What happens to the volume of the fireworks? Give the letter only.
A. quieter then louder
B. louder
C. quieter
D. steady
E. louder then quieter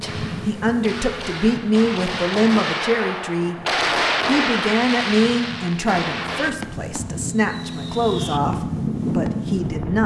E.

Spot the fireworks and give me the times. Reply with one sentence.
You can hear the fireworks from 0.0 to 10.0 s.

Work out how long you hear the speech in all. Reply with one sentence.
The speech can be heard for 9 seconds in total.